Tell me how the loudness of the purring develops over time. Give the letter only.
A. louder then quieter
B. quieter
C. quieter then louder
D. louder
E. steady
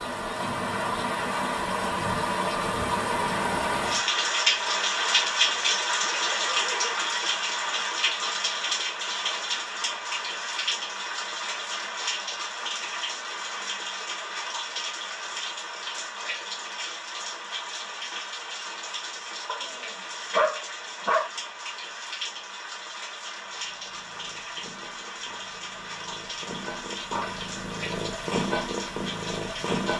D.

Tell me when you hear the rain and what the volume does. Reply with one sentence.
The rain can be heard from 0.0 to 29.9 s, getting quieter.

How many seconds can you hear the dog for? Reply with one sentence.
The dog can be heard for 3 seconds in total.